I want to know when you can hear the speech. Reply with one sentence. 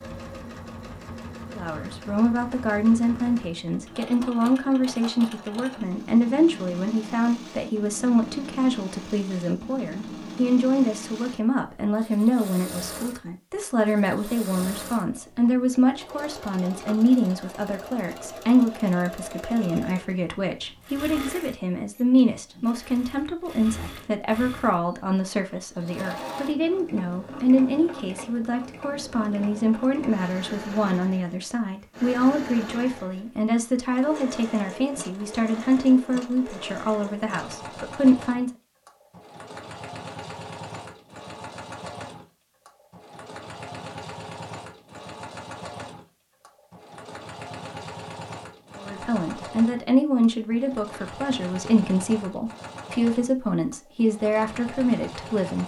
The speech can be heard from 1.5 to 38.5 s and from 48.8 to 55.6 s.